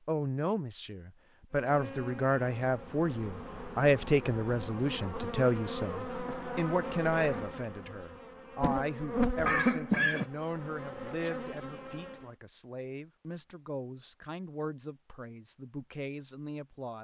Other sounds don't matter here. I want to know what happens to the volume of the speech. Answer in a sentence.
The loudness of the speech goes down.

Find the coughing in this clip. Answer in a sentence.
You can hear the coughing from 9.4 to 10.2 s.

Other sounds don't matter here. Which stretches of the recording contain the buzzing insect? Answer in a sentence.
You can hear the buzzing insect from 1.5 to 12.3 s.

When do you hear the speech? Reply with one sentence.
The speech can be heard from 0.1 to 16.9 s.